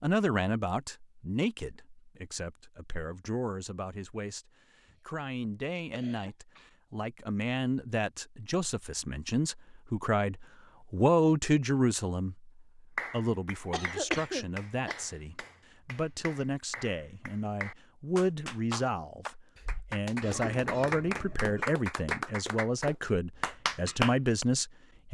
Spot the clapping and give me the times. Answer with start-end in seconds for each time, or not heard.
12.9-24.4.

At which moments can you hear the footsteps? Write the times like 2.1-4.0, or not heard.
not heard.